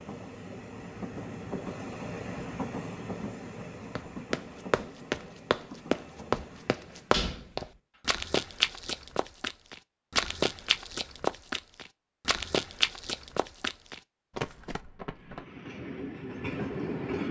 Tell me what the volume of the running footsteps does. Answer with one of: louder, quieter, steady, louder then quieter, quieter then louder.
quieter.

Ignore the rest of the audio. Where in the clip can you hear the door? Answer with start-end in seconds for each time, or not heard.
6.9-7.7.